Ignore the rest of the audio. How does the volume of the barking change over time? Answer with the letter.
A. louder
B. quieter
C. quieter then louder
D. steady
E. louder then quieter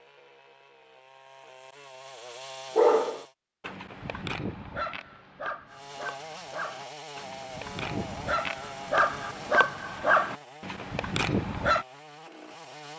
A.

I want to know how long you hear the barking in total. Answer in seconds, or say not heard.
9 s.